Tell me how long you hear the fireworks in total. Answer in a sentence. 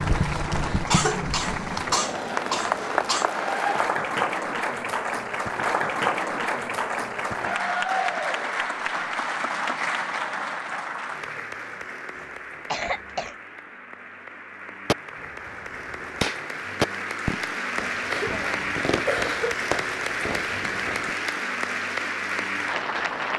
You can hear the fireworks for 6 seconds altogether.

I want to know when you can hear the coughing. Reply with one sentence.
You can hear the coughing from 0.8 to 3.2 s, from 12.2 to 13.3 s and from 18.1 to 19.6 s.